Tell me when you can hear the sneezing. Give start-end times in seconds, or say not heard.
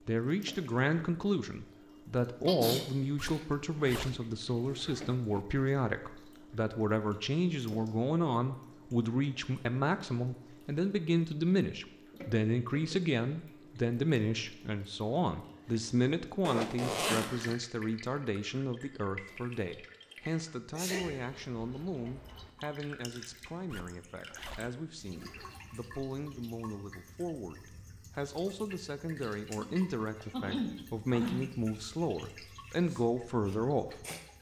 2.5-3.5, 20.2-21.2, 30.3-31.5.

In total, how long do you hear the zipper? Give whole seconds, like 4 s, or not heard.
5 s.